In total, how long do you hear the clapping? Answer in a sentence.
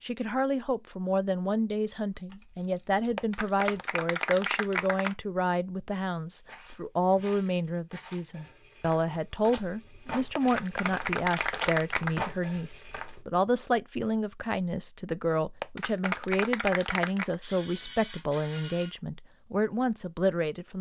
The clapping can be heard for 6 seconds in total.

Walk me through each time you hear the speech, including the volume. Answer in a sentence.
You can hear the speech from 0.0 to 20.7 s, at a steady volume.